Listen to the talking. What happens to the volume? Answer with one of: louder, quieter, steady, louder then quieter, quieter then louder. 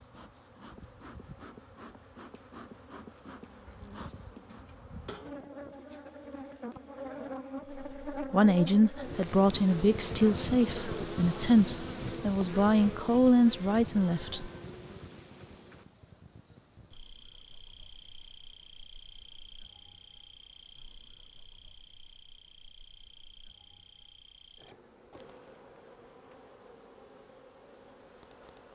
steady.